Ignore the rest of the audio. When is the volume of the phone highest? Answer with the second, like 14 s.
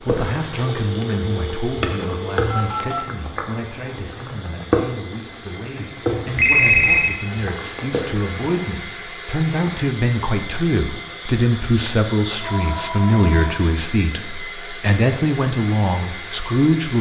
7 s.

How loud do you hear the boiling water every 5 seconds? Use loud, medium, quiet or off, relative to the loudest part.
loud, loud, off, off.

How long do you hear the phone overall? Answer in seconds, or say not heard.
5 s.